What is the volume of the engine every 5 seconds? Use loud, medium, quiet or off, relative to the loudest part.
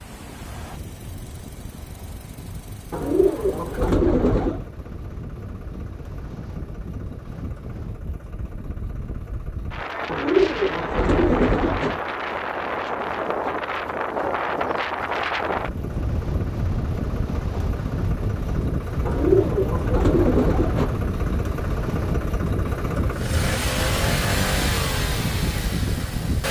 quiet, quiet, quiet, medium, loud, loud.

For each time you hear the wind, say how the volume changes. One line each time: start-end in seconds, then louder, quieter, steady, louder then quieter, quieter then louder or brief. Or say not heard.
0.0-26.4 louder.